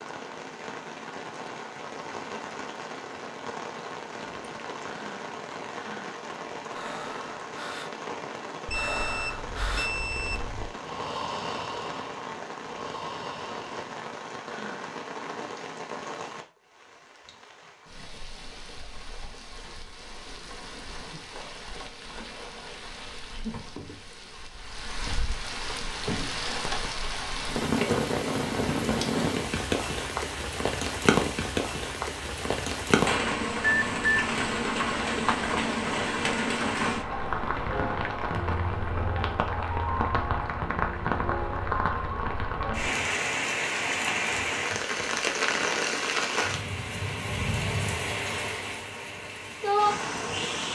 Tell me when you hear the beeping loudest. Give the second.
34 s.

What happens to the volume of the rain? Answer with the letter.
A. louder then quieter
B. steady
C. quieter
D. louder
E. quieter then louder
D.